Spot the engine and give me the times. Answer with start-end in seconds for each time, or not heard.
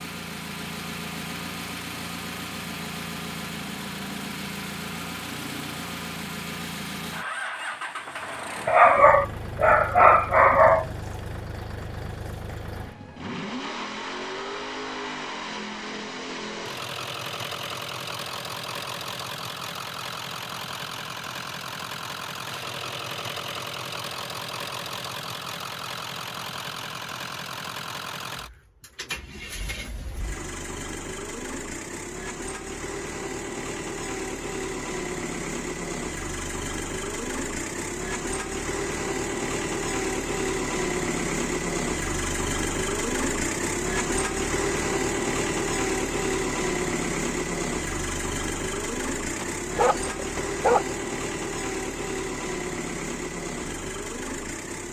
0.0-54.8.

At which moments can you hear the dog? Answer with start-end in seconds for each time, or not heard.
8.7-10.8, 49.4-51.0.